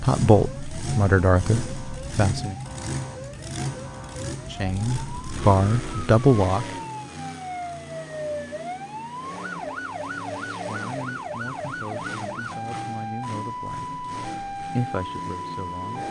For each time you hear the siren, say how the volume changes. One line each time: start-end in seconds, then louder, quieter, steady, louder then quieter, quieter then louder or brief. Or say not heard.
0.2-16.0 louder.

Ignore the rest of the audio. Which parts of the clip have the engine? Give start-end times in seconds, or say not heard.
0.0-16.0.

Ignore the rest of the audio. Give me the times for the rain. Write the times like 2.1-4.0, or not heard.
not heard.